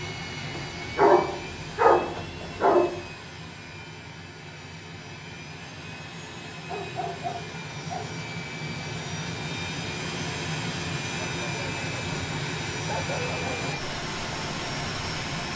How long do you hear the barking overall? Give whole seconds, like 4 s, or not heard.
6 s.